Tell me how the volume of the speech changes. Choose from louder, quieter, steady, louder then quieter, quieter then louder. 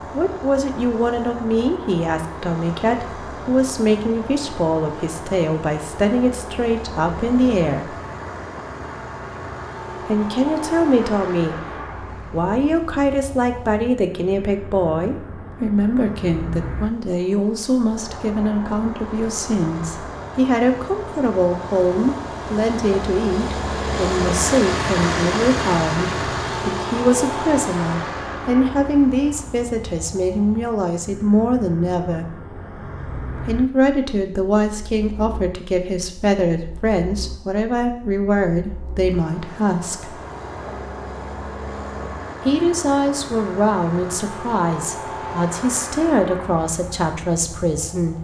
steady.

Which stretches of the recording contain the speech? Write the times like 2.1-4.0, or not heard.
0.1-7.9, 10.1-32.4, 33.4-40.1, 42.5-48.1.